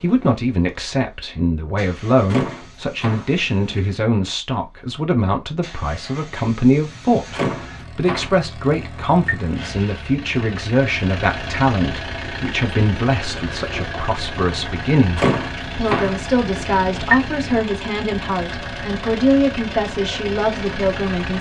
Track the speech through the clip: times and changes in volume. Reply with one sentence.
The speech can be heard from 0.0 to 21.3 s, at a steady volume.